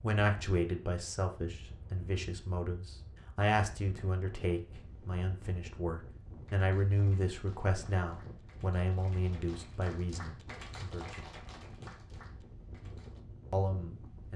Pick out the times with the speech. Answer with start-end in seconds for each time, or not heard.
0.0-11.2, 13.5-14.3.